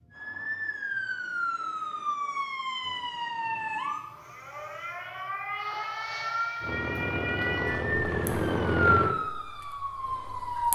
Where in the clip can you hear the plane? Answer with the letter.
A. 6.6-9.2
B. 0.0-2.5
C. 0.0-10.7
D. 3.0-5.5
A.